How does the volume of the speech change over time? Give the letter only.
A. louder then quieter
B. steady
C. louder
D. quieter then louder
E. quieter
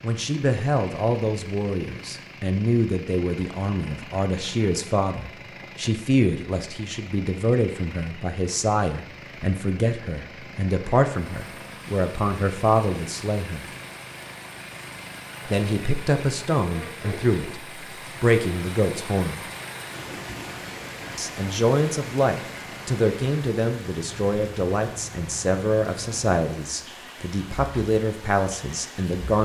B.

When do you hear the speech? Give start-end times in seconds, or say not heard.
0.0-13.7, 15.4-19.4, 21.1-29.4.